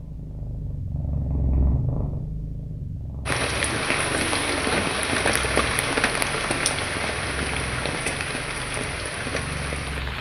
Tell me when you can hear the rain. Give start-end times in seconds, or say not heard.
3.2-10.1.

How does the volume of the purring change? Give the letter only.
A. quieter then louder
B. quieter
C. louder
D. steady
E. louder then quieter
B.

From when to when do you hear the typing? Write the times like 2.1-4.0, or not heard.
not heard.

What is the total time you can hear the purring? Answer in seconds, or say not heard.
10 s.